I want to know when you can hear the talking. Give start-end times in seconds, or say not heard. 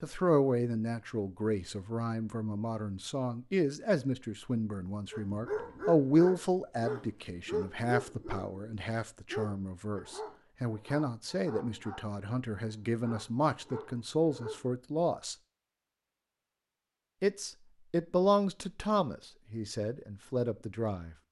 0.0-15.3, 17.2-21.1.